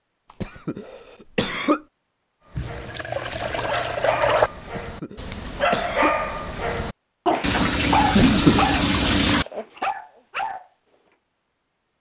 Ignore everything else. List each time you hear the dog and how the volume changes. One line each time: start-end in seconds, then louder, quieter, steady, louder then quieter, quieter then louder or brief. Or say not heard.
2.5-10.7 louder then quieter.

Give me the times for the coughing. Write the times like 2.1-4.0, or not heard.
0.4-1.8, 4.7-6.2, 8.1-8.8.